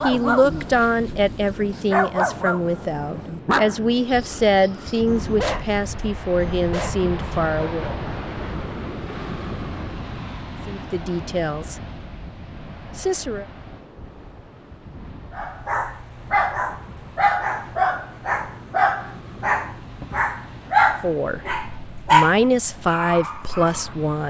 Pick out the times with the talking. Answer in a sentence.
You can hear the talking from 0.0 to 8.0 s, from 10.7 to 11.8 s, from 12.9 to 13.4 s and from 21.0 to 24.2 s.